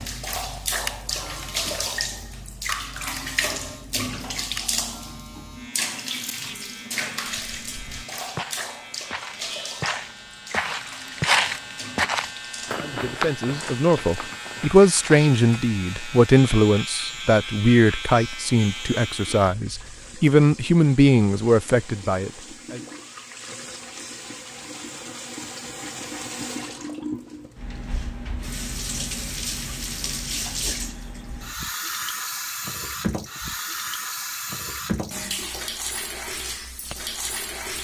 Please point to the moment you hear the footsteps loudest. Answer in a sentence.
The loudest moment of the footsteps is at 11 seconds.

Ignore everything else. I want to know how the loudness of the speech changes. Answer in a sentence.
The loudness of the speech stays about the same.